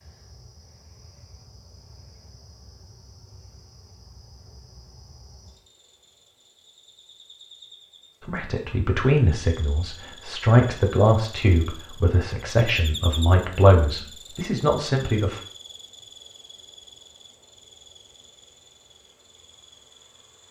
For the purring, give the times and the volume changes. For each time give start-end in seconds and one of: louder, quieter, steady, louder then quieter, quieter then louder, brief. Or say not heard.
not heard.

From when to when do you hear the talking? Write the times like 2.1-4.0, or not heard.
8.2-15.4.